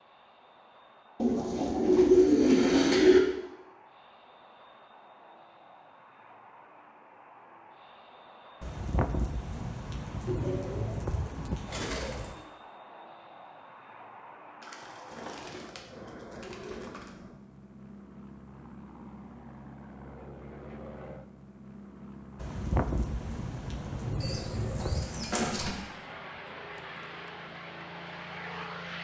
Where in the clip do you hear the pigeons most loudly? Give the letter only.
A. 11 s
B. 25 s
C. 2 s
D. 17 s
C.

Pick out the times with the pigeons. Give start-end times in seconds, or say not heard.
1.2-3.2, 10.2-12.4, 14.6-17.1, 24.2-25.8.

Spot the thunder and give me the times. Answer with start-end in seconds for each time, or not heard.
8.6-12.3, 22.4-25.4.